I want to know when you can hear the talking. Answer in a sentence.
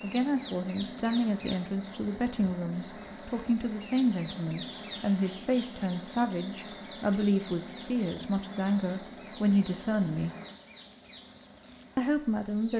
The talking can be heard from 0.0 to 10.3 s and from 11.9 to 12.7 s.